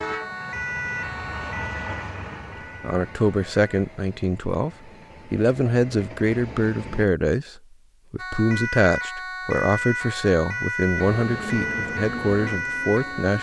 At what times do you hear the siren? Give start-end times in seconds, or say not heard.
0.0-3.7, 8.2-13.3.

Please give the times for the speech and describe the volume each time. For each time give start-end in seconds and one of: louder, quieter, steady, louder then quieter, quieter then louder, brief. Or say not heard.
2.8-13.3 steady.